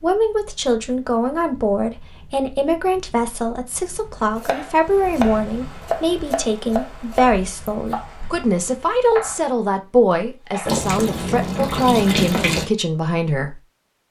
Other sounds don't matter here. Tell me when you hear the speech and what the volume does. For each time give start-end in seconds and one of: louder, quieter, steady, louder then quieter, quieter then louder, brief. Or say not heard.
0.0-13.6 steady.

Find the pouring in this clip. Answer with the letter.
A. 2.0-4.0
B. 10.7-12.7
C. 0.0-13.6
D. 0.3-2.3
B.